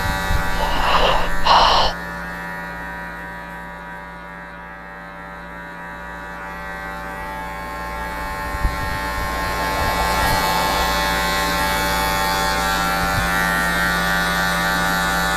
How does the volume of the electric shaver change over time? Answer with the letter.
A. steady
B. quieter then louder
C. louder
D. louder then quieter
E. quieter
B.